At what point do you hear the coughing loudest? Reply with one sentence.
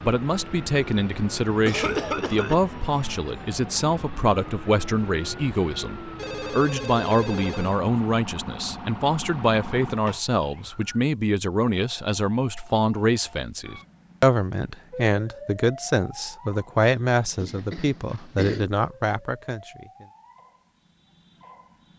The volume of the coughing peaks at 2 seconds.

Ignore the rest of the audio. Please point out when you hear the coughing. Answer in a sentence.
The coughing can be heard from 1.6 to 2.6 s and from 17.4 to 18.7 s.